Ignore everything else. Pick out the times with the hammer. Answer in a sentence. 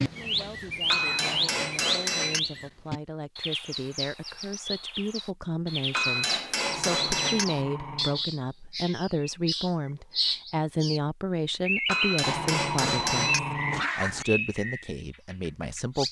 You can hear the hammer from 0.9 to 2.4 s, from 5.9 to 7.5 s and from 11.8 to 13.4 s.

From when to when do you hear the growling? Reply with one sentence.
You can hear the growling from 0.9 to 1.6 s, from 6.7 to 8.2 s and from 12.2 to 14.2 s.